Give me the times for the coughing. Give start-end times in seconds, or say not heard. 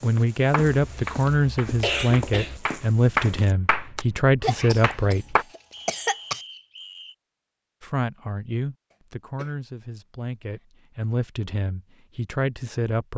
0.7-2.6, 4.4-6.4, 8.9-9.5.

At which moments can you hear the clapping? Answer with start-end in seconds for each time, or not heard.
0.5-5.5.